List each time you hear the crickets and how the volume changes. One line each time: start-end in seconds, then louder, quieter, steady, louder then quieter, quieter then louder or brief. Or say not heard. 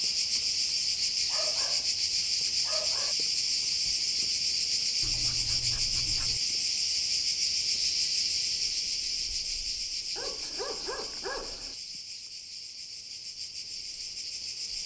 0.0-14.8 quieter.